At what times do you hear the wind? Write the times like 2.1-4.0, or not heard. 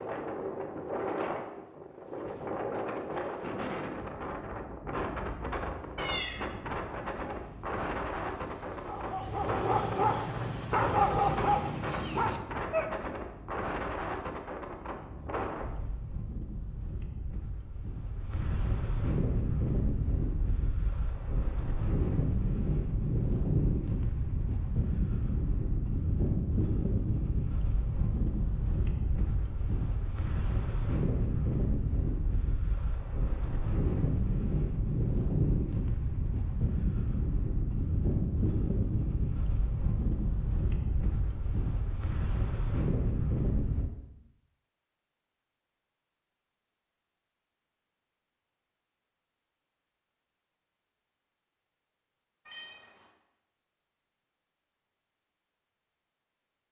0.0-43.9.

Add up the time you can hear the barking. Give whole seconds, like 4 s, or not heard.
6 s.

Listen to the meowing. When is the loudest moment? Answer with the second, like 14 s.
6 s.